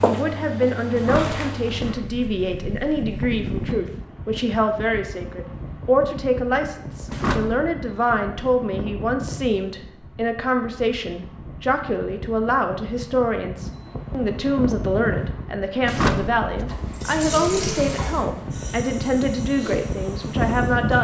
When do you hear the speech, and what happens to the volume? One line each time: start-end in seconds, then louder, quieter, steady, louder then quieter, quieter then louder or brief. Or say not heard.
0.0-21.0 steady.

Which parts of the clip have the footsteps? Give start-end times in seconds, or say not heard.
0.0-1.9.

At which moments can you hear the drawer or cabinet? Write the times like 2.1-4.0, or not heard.
0.9-2.0, 7.0-7.6, 15.8-16.8.